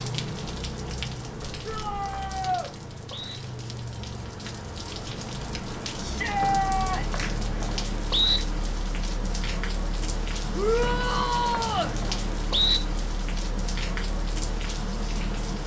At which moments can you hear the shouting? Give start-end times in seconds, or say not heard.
1.6-2.7, 6.0-7.2, 10.6-11.9.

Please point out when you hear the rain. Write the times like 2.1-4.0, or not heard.
0.0-15.6.